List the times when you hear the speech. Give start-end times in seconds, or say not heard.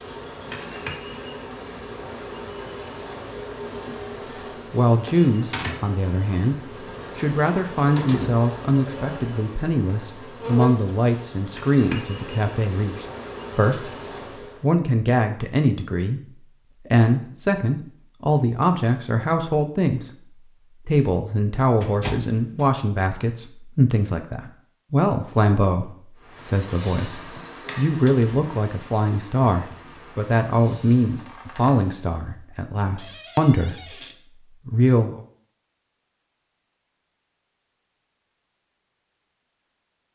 4.7-14.0, 14.6-16.2, 16.9-34.0, 34.6-35.2.